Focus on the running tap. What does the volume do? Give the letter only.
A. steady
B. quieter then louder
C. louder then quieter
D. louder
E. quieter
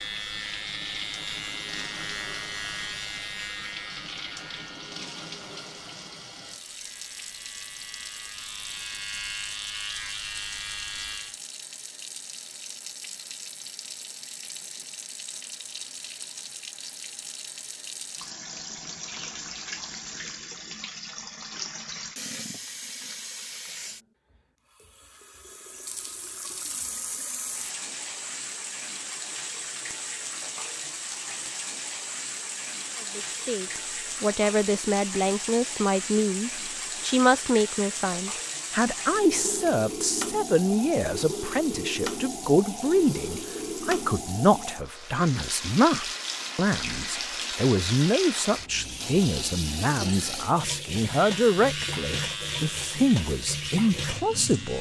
D.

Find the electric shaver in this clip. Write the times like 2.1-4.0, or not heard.
0.0-11.4, 51.0-54.7.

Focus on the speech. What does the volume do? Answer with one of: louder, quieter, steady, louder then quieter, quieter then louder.
steady.